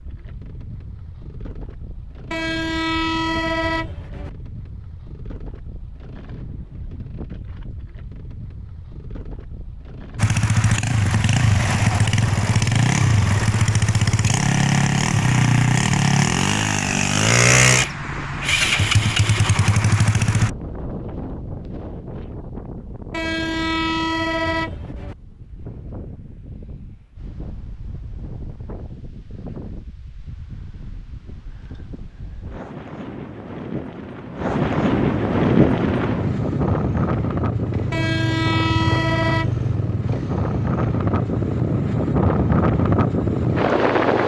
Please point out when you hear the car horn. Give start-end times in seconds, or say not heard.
2.3-4.3, 23.1-25.1, 37.9-39.6.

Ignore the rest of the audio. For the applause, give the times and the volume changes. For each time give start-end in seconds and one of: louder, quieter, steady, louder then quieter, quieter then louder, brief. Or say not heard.
not heard.